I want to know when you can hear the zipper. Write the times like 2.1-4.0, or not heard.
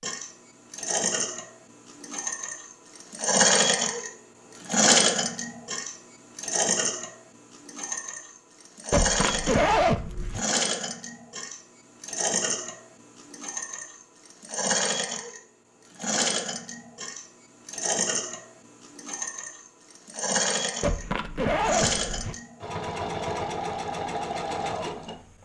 8.9-10.4, 20.8-22.4.